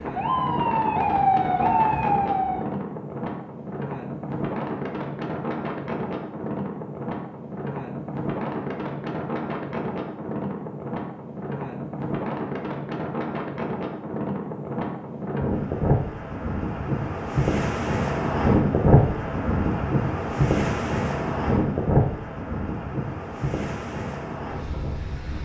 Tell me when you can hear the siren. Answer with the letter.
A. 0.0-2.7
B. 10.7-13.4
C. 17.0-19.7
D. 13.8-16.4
A.